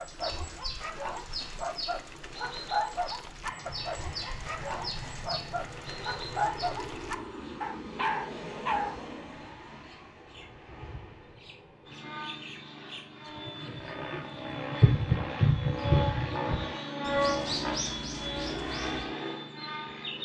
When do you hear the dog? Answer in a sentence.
The dog can be heard from 0.0 to 9.0 s.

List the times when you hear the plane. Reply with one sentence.
The plane can be heard from 3.4 to 20.1 s.